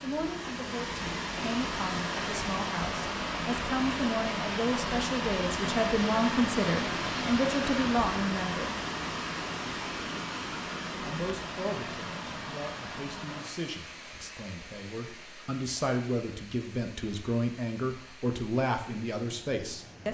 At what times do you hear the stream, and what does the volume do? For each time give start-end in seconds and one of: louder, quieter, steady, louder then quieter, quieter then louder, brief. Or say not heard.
0.0-20.0 quieter.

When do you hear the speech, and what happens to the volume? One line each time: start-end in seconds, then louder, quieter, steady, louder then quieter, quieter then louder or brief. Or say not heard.
0.0-8.8 louder
11.1-20.0 louder.